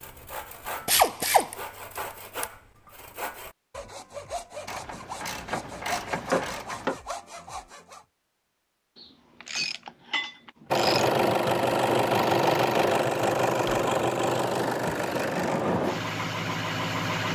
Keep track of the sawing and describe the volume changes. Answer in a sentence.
The volume of the sawing stays about the same.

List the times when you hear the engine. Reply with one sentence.
You can hear the engine from 10.7 to 17.2 s.